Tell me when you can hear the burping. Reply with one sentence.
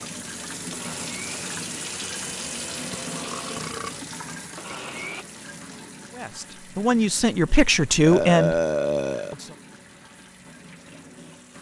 You can hear the burping from 3.0 to 3.9 s and from 8.1 to 9.3 s.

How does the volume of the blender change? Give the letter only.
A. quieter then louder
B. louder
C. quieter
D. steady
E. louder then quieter
D.